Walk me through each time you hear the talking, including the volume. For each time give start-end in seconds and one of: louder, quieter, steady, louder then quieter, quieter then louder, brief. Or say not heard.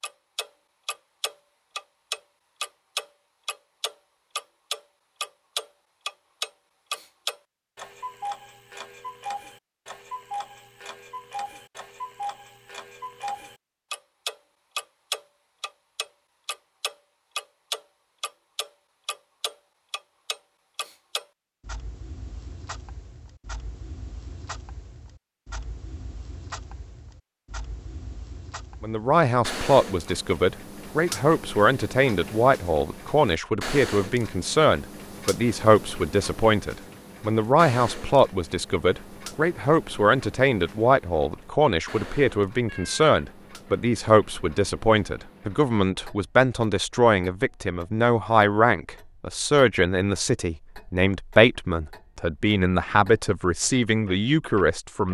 28.8-55.0 steady.